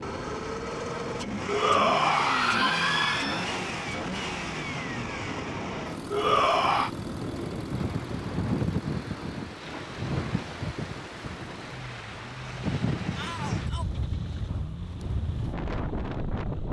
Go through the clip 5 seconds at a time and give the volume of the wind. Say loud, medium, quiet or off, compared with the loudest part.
medium, loud, loud, loud.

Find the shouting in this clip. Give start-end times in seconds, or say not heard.
1.4-3.5, 6.1-6.9, 13.2-13.8.